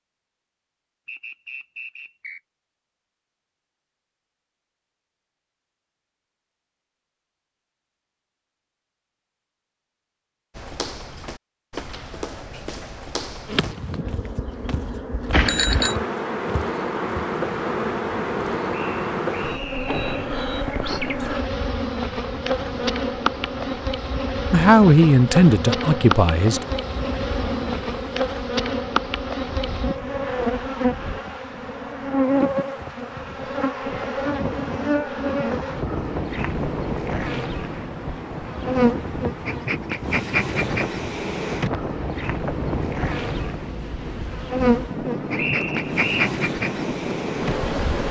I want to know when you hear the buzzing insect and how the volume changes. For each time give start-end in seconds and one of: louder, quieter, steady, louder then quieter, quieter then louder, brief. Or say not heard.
13.4-48.0 steady.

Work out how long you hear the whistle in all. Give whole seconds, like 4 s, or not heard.
4 s.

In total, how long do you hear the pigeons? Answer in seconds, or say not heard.
not heard.